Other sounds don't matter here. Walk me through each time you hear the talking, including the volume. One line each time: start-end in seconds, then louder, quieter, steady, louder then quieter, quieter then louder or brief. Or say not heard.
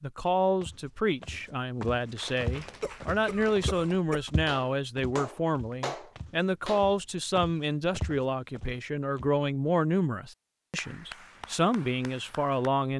0.0-12.9 steady.